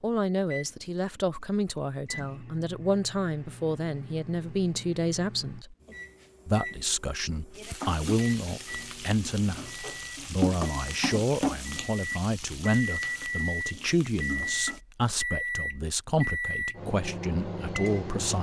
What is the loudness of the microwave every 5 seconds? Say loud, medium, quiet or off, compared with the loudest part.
quiet, quiet, loud, loud.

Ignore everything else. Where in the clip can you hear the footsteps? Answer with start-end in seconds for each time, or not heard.
not heard.